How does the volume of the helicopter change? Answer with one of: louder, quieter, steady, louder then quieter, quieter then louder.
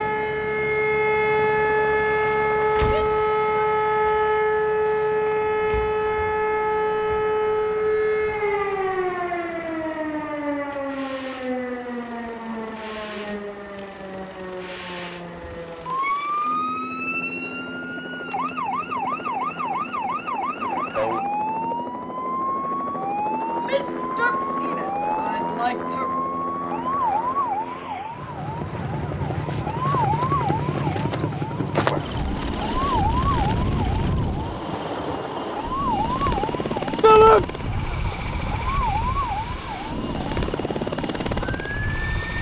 louder.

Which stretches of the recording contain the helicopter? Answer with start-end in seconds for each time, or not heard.
0.0-42.3.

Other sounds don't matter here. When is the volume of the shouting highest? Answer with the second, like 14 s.
37 s.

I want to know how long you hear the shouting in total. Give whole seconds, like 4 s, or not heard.
4 s.